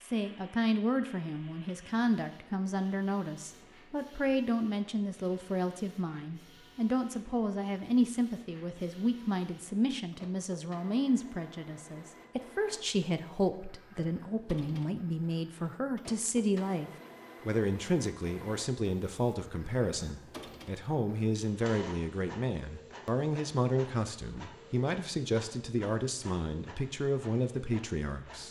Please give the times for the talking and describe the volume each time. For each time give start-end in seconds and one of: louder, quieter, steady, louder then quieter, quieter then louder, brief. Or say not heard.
0.0-28.4 steady.